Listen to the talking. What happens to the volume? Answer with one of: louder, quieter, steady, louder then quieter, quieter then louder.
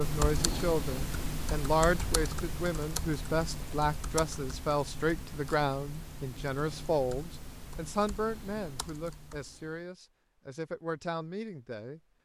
quieter.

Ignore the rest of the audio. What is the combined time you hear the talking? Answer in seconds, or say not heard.
12 s.